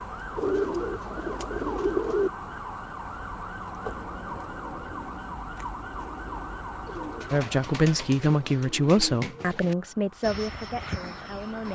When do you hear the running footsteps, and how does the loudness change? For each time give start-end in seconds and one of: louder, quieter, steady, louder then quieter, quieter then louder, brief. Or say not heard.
not heard.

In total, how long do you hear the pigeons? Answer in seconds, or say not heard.
5 s.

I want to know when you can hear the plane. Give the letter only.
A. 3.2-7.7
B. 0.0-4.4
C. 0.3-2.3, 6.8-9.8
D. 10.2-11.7
D.